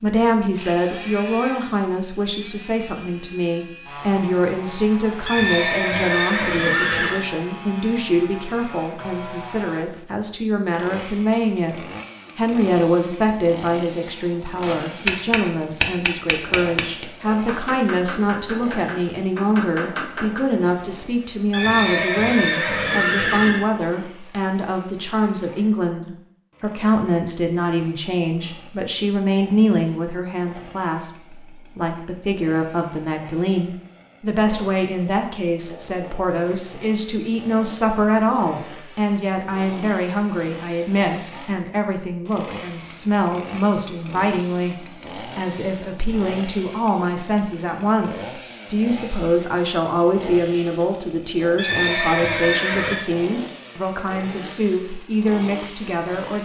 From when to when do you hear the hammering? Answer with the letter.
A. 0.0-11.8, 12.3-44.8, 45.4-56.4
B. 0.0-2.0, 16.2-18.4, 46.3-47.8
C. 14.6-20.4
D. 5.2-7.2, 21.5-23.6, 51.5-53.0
C.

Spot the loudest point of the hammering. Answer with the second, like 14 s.
15 s.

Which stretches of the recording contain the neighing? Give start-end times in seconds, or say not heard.
5.2-7.2, 21.5-23.6, 51.5-53.0.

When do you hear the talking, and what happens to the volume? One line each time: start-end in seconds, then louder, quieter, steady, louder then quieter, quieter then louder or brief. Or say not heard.
0.0-11.8 steady
12.3-44.8 steady
45.4-56.4 steady.